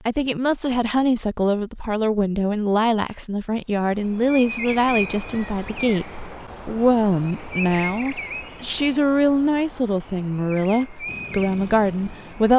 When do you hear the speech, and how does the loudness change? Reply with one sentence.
The speech can be heard from 0.1 to 12.5 s, at a steady volume.